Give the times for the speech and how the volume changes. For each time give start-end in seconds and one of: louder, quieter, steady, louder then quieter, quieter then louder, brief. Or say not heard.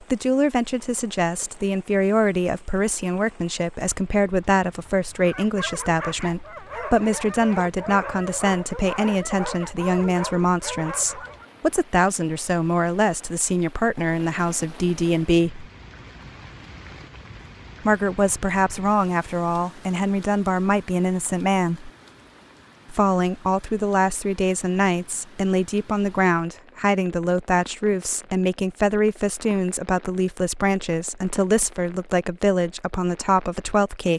0.1-15.7 steady
17.9-21.9 steady
22.9-34.1 steady.